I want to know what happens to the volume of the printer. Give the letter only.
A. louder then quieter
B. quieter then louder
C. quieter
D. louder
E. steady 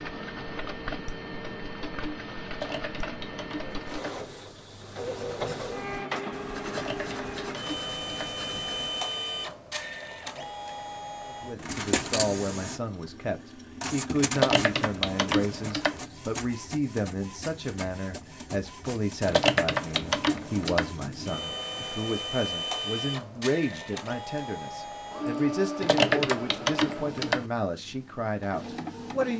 E.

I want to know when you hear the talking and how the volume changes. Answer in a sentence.
You can hear the talking from 11.2 to 29.3 s, at a steady volume.